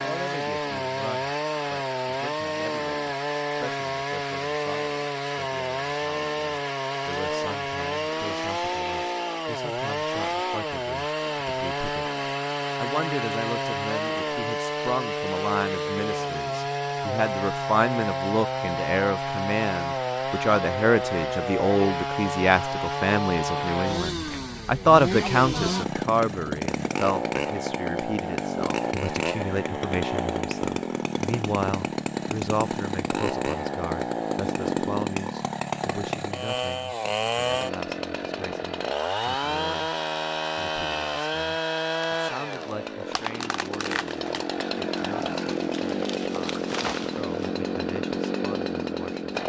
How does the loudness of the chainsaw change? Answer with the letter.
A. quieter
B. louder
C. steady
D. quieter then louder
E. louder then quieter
C.